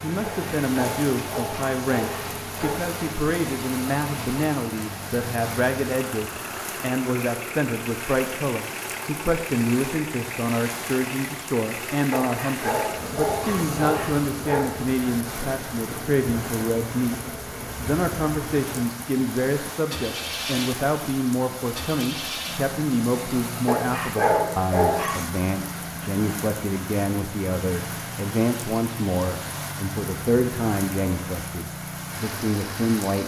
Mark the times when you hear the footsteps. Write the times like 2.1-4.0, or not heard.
not heard.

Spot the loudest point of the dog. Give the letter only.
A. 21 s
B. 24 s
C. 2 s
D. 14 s
B.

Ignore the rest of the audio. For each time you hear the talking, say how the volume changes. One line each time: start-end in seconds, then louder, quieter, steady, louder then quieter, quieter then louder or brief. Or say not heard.
0.0-33.2 steady.